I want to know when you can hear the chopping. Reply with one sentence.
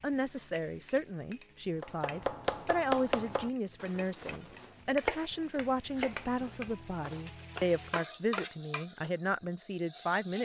The chopping can be heard from 1.8 to 9.1 s.